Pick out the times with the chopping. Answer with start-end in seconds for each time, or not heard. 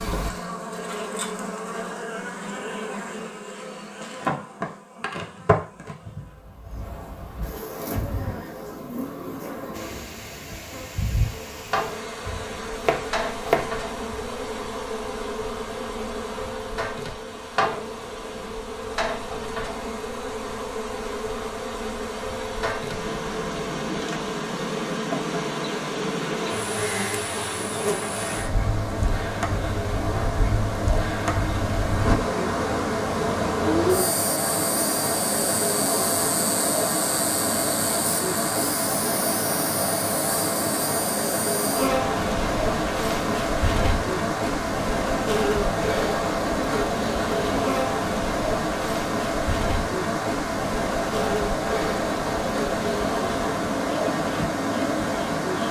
12.2-14.2.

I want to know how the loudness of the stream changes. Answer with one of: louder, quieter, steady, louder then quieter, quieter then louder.
louder.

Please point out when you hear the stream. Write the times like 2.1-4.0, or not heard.
9.7-55.6.